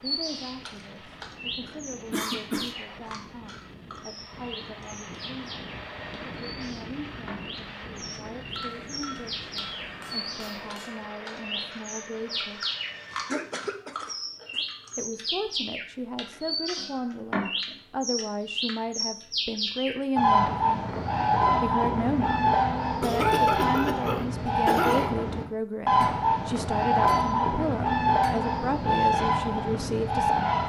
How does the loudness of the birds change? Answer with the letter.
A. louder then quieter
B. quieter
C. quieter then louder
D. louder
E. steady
D.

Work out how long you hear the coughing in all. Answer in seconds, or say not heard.
4 s.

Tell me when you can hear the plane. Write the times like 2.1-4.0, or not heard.
0.0-13.6.